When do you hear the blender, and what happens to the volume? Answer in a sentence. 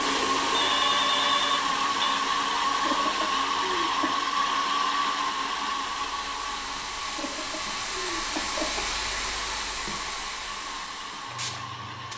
The blender can be heard from 0.0 to 12.1 s, getting quieter.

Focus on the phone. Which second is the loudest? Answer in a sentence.
The volume of the phone peaks at 1 second.